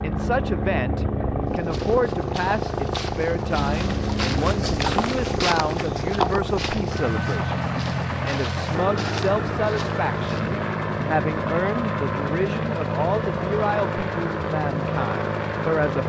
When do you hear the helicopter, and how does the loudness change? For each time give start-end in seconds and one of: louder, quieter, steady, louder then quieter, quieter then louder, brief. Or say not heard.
0.0-16.0 steady.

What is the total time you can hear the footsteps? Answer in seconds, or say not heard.
9 s.